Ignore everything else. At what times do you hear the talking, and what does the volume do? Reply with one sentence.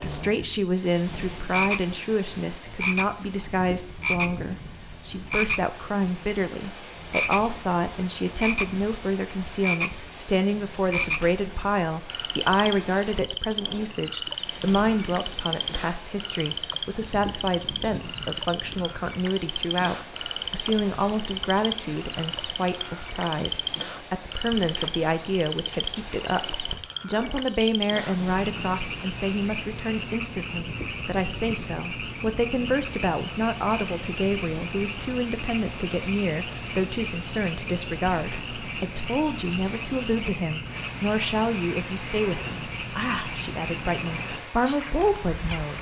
The talking can be heard from 0.0 to 45.7 s, at a steady volume.